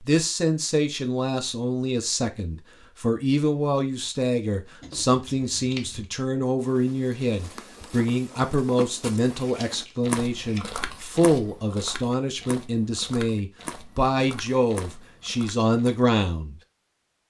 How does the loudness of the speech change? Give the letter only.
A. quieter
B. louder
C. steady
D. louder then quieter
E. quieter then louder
C.